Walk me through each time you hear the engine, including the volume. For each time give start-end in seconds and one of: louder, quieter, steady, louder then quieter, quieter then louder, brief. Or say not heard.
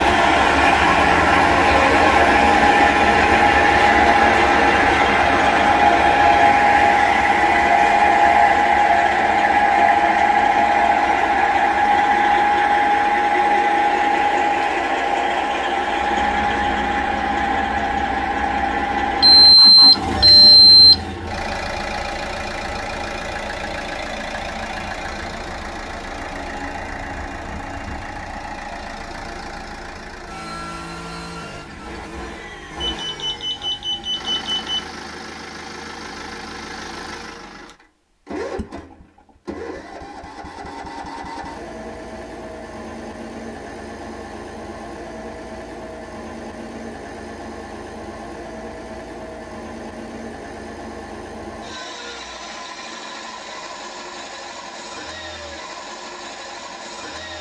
0.0-57.3 quieter.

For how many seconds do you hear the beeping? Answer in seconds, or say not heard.
4 s.